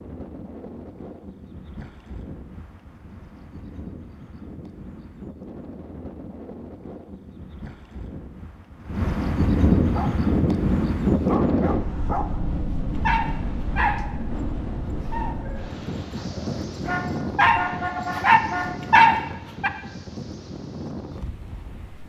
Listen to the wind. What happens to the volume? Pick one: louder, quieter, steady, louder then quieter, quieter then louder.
louder then quieter.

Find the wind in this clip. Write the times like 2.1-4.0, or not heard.
0.0-22.0.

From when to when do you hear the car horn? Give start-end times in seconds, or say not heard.
16.9-18.7.